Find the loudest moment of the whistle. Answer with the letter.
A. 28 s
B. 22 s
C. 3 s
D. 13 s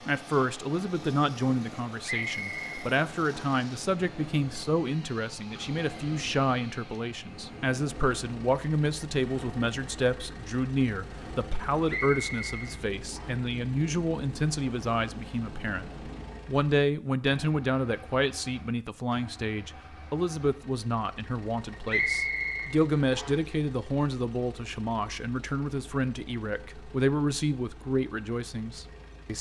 B.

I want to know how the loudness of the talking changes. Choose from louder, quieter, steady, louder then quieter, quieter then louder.
steady.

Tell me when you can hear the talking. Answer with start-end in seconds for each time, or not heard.
0.1-29.3.